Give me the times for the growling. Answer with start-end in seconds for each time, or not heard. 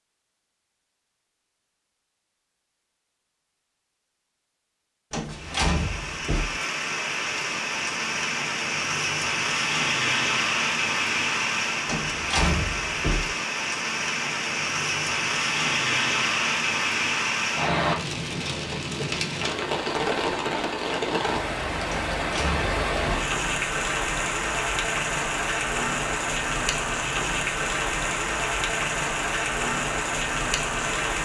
not heard.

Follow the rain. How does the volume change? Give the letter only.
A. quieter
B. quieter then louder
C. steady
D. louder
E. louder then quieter
C.